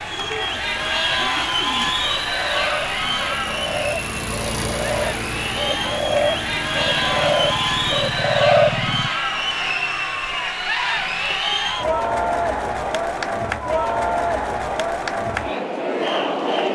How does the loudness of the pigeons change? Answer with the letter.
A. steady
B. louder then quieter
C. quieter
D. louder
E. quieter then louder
D.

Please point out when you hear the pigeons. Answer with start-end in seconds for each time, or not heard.
0.1-9.1.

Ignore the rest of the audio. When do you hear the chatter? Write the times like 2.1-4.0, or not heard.
0.0-16.6.